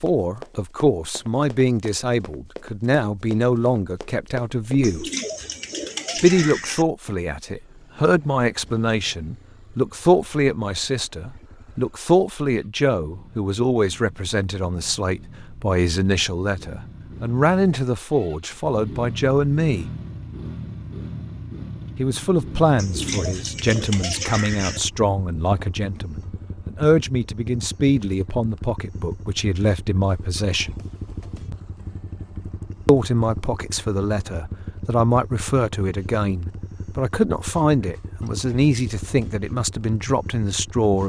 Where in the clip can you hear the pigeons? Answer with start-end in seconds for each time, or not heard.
4.8-6.8, 22.8-24.8.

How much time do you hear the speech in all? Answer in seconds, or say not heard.
36 s.